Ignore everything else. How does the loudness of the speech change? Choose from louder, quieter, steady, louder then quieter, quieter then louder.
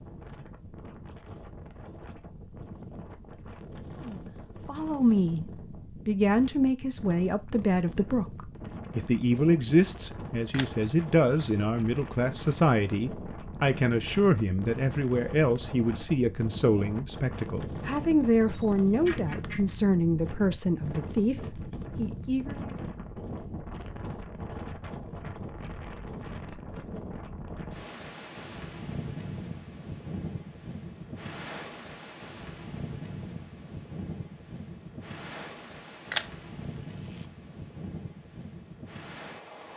steady.